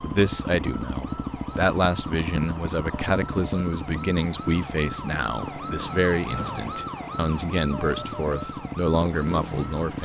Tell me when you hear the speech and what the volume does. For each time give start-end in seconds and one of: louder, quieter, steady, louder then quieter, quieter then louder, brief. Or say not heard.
0.0-10.0 steady.